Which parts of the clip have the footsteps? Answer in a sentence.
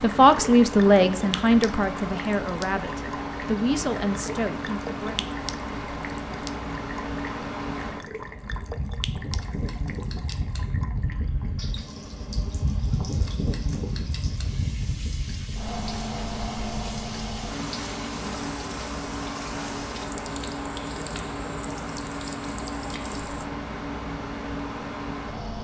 You can't hear the footsteps here.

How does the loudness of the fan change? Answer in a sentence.
The volume of the fan stays about the same.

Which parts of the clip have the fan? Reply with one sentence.
The fan can be heard from 0.0 to 25.5 s.